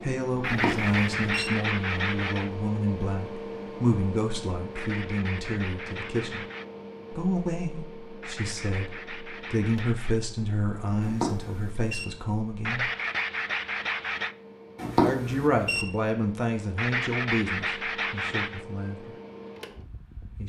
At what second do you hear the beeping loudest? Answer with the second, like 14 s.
15 s.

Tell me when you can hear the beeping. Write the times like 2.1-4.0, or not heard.
0.5-1.5, 11.0-12.1, 14.8-15.8.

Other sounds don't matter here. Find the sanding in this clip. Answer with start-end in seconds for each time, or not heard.
0.4-2.5, 4.8-6.7, 8.2-10.2, 12.7-14.3, 16.8-18.6.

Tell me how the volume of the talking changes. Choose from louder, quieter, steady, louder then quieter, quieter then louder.
steady.